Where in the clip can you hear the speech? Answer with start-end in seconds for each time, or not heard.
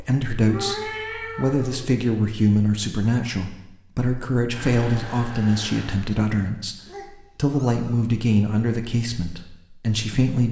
0.0-6.8, 7.3-10.4.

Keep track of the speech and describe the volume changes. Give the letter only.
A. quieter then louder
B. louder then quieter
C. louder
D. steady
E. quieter
D.